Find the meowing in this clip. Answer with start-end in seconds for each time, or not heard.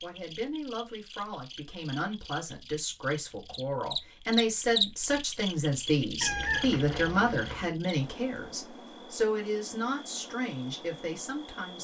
6.2-7.7.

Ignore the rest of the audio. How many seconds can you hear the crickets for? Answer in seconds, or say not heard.
12 s.